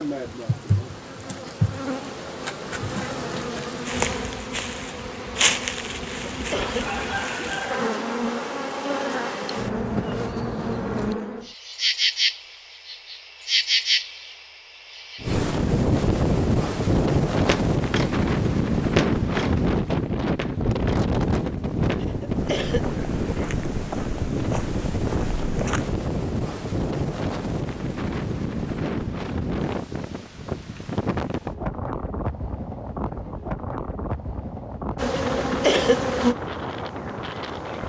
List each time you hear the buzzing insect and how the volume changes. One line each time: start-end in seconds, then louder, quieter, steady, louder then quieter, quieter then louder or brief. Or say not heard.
0.0-15.6 steady
35.0-37.8 brief.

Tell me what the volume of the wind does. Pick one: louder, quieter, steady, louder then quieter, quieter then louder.
quieter.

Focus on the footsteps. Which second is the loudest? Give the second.
19 s.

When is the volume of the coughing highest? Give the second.
36 s.